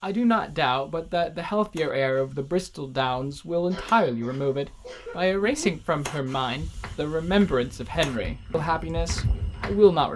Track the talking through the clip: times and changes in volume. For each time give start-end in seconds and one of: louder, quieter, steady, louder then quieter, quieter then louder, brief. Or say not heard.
0.0-10.1 steady.